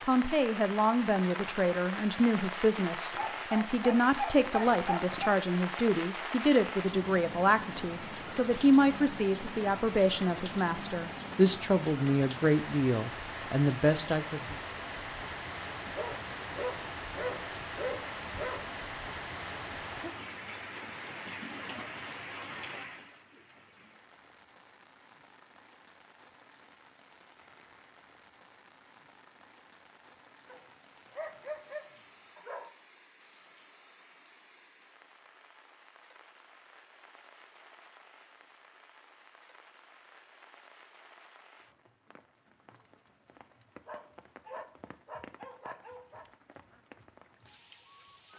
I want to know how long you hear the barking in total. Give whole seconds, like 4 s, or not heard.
10 s.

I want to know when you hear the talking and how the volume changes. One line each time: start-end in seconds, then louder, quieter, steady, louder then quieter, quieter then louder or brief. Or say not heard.
0.1-14.6 steady.